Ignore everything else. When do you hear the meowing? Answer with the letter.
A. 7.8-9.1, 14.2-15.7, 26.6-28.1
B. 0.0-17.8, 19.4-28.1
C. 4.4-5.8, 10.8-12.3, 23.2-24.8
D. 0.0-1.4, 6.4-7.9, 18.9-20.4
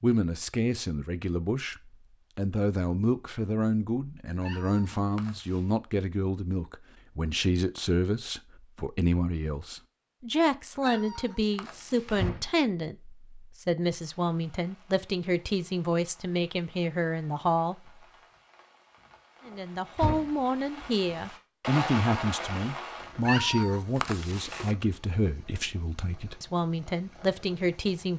C.